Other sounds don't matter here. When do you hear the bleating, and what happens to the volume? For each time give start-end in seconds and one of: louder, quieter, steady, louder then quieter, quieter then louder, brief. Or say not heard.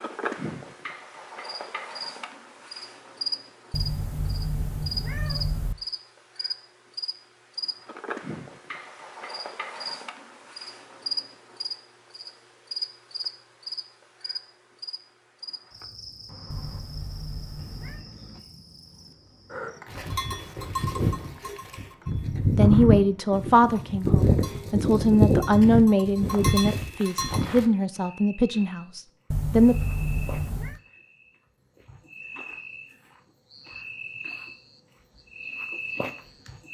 19.9-27.6 louder then quieter.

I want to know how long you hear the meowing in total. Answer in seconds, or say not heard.
5 s.